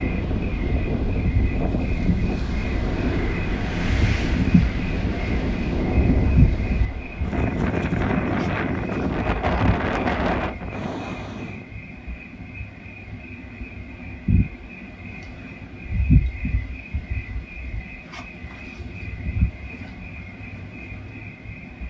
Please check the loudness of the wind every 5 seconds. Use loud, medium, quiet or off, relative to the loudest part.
loud, loud, loud, off, off.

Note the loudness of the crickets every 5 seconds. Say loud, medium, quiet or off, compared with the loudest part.
loud, loud, medium, loud, medium.